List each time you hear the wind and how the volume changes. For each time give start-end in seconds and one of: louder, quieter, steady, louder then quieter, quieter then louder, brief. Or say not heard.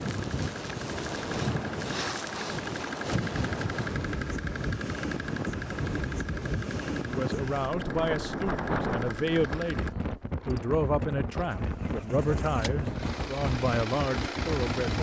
0.0-14.9 steady.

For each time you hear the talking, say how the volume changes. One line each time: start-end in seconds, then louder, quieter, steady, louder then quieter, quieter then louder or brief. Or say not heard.
7.0-14.9 steady.